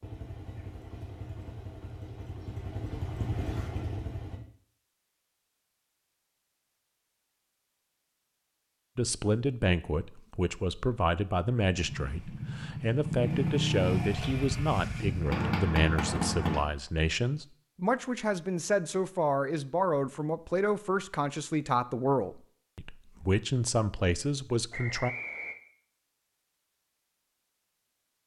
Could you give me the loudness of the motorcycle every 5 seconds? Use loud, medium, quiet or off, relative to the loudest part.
medium, off, loud, loud, off, off.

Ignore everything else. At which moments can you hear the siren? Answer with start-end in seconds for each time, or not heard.
not heard.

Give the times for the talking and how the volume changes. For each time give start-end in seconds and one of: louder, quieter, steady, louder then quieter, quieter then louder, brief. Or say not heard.
8.9-25.1 steady.